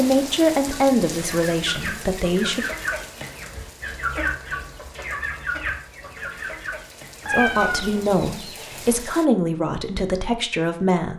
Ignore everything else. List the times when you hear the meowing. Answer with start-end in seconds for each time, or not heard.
7.2-8.2.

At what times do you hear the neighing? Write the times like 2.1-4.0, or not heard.
not heard.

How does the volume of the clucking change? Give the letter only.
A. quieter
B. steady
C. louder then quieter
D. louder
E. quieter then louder
A.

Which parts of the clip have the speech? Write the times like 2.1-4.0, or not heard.
0.0-2.7, 7.3-11.1.